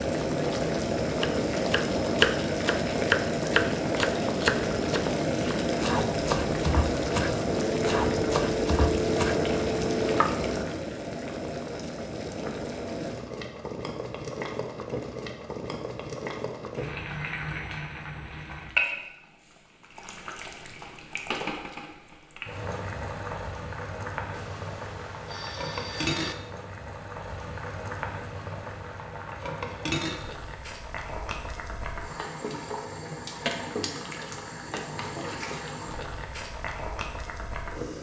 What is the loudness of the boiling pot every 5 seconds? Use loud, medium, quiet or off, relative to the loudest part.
loud, loud, medium, medium, medium, medium, medium, medium.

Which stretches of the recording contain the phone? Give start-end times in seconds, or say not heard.
7.7-10.2, 24.3-26.4.